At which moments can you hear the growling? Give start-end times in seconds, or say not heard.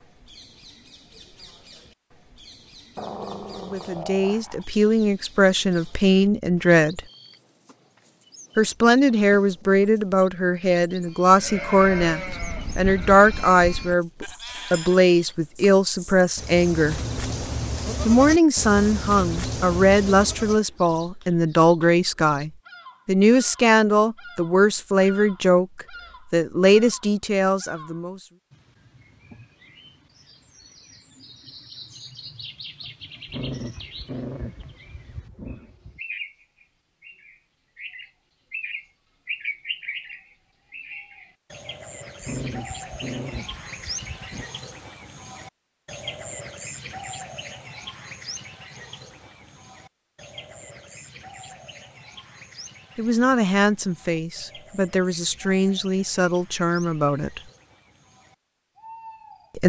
3.0-4.7, 33.2-36.0, 42.2-44.5.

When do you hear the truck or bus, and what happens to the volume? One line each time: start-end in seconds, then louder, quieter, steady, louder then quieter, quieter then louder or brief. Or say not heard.
not heard.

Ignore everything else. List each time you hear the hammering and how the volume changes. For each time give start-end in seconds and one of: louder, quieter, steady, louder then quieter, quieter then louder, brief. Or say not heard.
not heard.